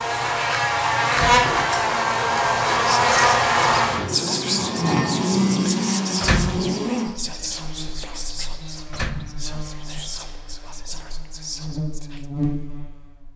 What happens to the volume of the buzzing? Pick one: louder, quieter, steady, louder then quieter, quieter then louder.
quieter then louder.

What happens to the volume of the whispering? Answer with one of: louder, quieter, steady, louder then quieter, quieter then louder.
quieter.